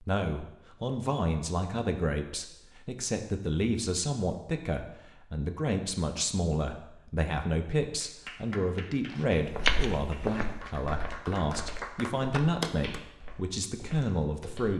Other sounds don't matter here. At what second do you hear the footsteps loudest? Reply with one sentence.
The loudest moment of the footsteps is at 10 seconds.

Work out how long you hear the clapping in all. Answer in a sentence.
The clapping can be heard for 5 seconds in total.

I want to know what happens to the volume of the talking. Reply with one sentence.
The volume of the talking stays about the same.